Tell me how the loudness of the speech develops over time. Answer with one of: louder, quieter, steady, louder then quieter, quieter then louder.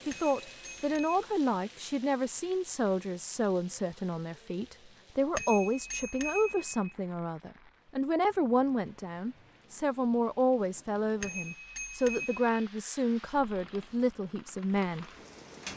steady.